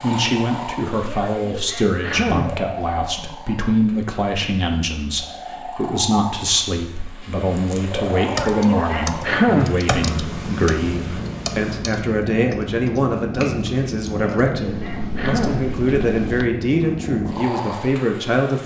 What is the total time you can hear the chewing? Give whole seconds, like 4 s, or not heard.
not heard.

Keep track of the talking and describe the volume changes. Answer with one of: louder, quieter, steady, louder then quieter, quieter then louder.
steady.